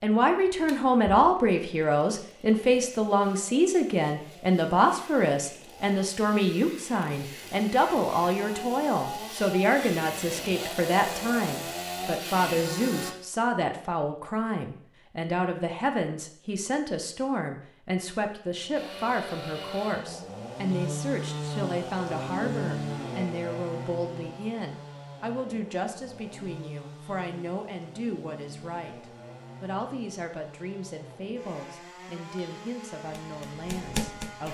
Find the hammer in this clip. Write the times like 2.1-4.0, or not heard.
32.2-34.4.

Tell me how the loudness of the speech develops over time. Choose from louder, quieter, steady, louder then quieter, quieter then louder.
quieter.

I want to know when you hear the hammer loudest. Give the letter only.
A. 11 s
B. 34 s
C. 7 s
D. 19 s
B.